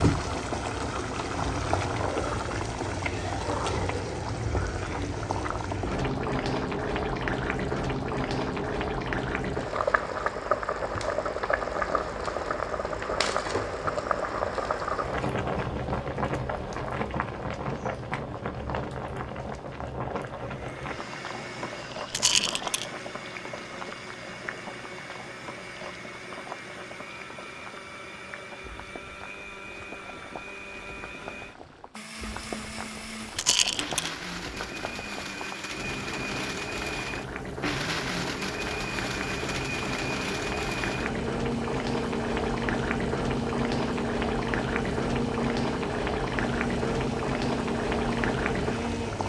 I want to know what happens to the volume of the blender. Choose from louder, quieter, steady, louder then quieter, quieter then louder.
louder.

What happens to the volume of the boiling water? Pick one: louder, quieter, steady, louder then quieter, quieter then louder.
quieter then louder.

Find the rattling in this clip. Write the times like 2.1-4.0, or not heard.
22.1-22.9, 33.4-34.1.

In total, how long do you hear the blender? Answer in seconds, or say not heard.
29 s.